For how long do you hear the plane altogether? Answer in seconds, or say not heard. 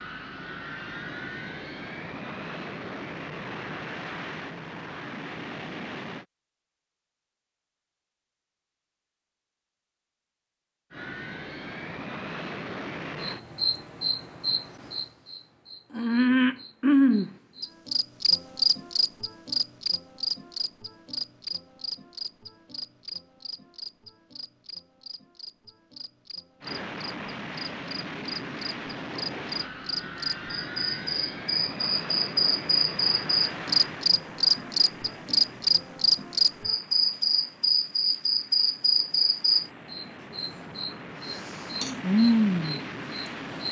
26 s.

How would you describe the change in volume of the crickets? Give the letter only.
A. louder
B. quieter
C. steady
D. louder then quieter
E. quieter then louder
E.